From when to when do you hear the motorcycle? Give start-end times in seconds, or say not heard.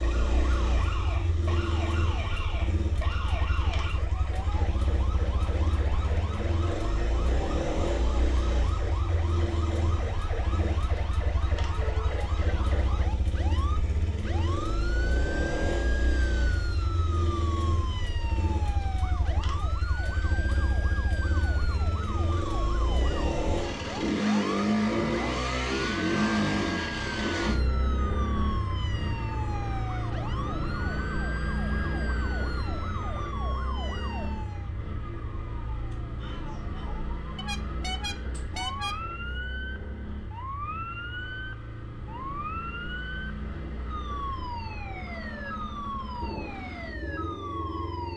0.0-48.1.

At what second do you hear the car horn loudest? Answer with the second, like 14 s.
39 s.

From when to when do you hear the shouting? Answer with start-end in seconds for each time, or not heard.
11.8-12.2, 36.1-37.0.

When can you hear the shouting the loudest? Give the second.
12 s.